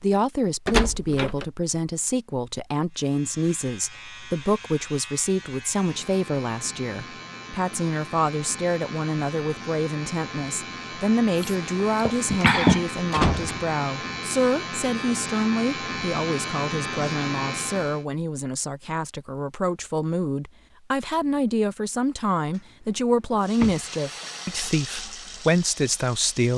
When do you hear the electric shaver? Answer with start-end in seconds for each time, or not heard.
2.9-18.1.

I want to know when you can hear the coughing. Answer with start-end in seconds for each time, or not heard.
11.3-12.9.